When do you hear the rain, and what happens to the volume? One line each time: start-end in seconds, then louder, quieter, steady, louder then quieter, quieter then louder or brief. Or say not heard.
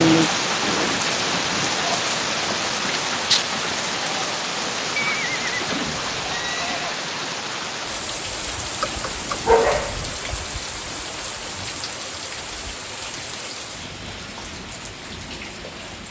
0.0-16.0 quieter.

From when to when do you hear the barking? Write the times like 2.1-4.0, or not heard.
8.8-10.2.